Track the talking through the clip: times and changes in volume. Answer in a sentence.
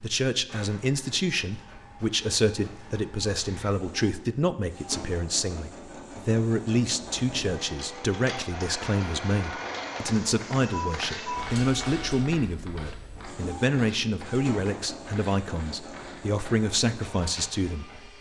The talking can be heard from 0.0 to 18.1 s, at a steady volume.